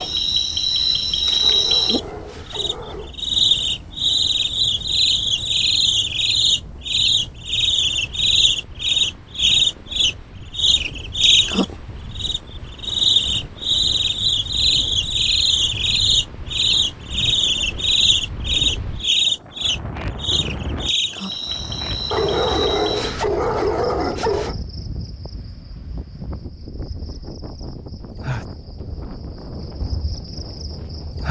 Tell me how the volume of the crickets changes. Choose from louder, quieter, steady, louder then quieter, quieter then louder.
quieter.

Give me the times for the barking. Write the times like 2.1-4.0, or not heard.
1.4-3.1, 22.1-24.6.